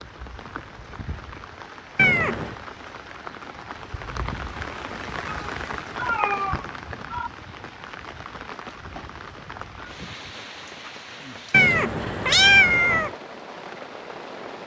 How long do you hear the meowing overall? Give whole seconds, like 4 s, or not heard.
4 s.